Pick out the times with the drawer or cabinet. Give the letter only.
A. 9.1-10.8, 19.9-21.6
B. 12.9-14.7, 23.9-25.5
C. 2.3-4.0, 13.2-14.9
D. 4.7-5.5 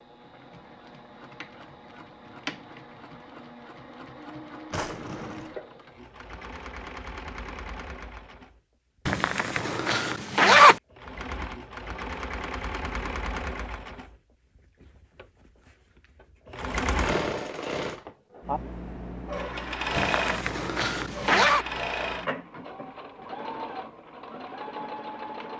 D.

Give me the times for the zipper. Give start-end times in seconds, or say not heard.
9.1-10.8, 19.9-21.6.